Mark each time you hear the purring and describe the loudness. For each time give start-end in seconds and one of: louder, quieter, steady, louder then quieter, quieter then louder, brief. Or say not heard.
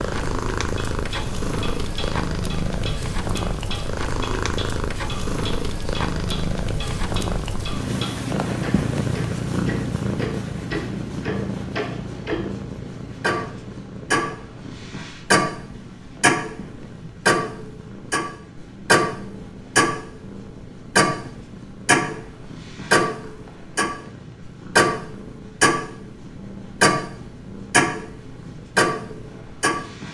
0.0-30.0 quieter.